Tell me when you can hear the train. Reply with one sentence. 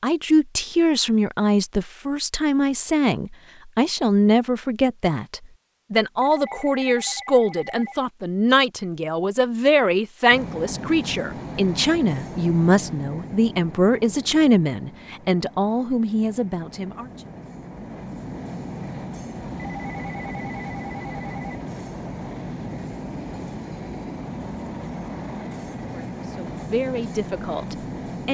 You can hear the train from 10.3 to 28.2 s.